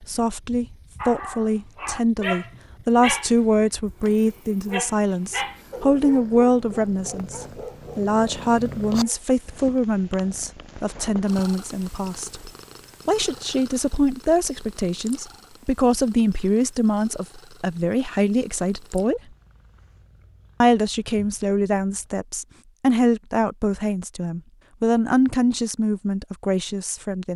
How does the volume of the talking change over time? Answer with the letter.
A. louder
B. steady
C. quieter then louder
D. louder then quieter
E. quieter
B.